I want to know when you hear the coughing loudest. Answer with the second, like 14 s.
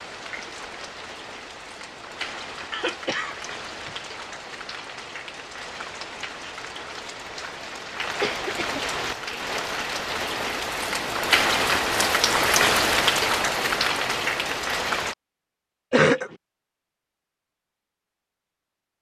16 s.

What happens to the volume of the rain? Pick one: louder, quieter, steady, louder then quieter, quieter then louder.
louder.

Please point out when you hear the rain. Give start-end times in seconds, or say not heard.
0.0-15.2.